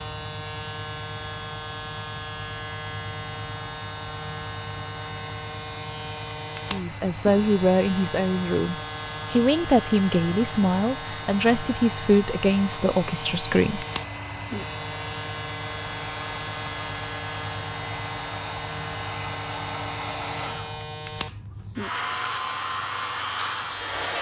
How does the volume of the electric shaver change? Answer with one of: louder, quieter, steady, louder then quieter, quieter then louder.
steady.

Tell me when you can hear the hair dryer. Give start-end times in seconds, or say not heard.
0.0-24.1.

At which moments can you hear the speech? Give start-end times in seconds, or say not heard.
6.7-13.8.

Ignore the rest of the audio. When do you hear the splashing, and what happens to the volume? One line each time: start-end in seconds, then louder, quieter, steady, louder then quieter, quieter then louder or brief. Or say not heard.
not heard.